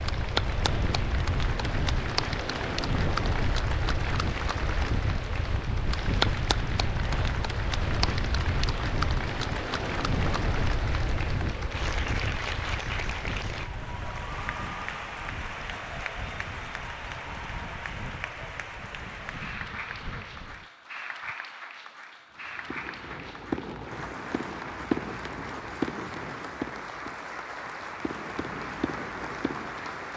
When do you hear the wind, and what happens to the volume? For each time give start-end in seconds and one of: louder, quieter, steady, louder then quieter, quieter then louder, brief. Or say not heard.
0.0-20.7 quieter.